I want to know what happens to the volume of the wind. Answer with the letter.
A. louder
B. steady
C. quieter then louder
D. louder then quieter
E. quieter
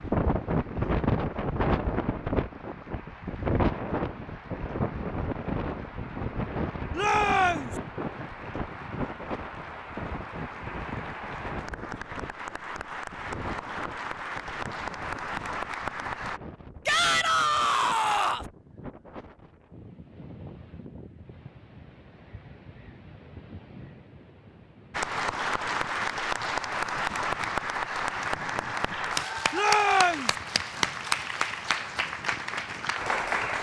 E.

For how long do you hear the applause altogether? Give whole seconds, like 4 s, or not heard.
25 s.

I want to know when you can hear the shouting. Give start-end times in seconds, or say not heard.
7.0-7.7, 16.9-18.4, 29.5-30.3.